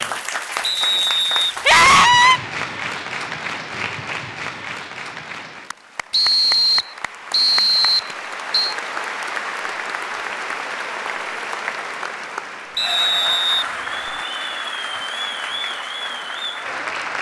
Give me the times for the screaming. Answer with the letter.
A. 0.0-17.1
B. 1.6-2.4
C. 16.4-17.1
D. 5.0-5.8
B.